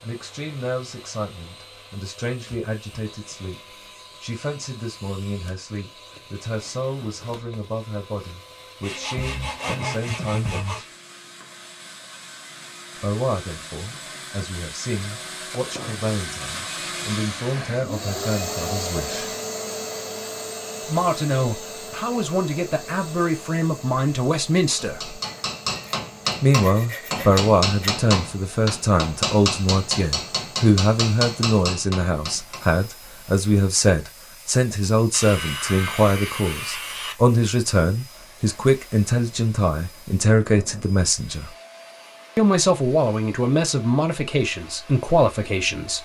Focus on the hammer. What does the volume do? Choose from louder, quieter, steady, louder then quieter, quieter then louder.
steady.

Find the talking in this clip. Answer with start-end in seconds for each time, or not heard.
0.0-10.8, 12.9-19.4, 20.9-25.2, 26.4-41.5, 42.4-45.9.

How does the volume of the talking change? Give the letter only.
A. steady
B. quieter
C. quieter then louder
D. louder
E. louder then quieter
D.